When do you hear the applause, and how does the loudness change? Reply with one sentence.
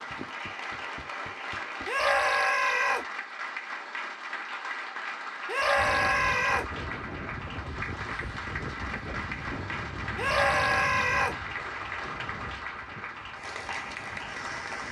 The applause can be heard from 0.0 to 14.8 s, at a steady volume.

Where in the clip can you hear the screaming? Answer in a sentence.
You can hear the screaming from 1.9 to 3.0 s, from 5.5 to 6.7 s and from 10.2 to 11.3 s.